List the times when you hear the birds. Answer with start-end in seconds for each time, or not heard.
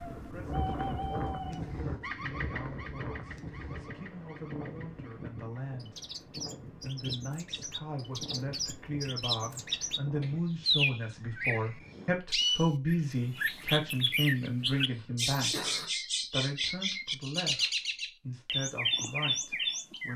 0.0-20.1.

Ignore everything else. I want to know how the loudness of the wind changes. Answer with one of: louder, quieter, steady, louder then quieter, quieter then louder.
quieter.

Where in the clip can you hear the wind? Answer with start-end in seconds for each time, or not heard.
0.0-10.4.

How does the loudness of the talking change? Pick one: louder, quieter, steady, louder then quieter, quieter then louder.
louder then quieter.